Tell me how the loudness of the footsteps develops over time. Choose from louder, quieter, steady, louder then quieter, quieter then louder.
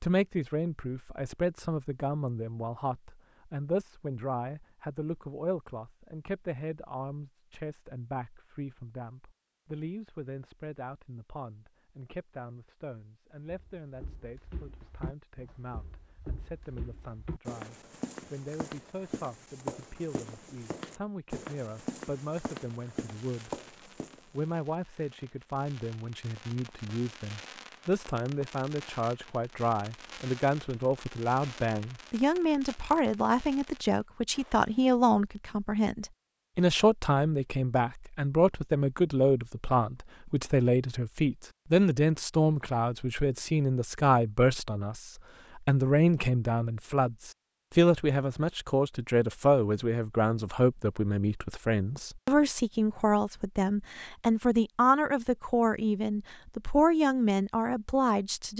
louder.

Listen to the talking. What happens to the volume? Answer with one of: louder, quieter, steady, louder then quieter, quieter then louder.
quieter then louder.